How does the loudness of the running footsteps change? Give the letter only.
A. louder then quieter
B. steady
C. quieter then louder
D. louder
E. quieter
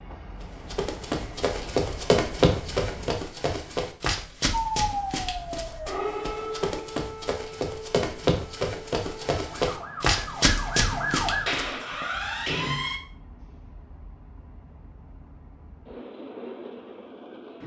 C.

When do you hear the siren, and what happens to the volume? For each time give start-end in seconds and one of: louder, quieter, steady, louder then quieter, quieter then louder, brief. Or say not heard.
4.5-13.0 quieter then louder.